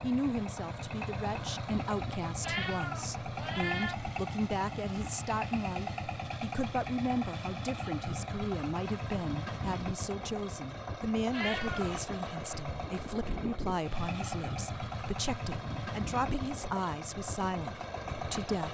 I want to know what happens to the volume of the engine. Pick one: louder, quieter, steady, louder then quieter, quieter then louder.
steady.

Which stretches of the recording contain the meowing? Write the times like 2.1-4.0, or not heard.
2.4-4.0, 11.3-12.0.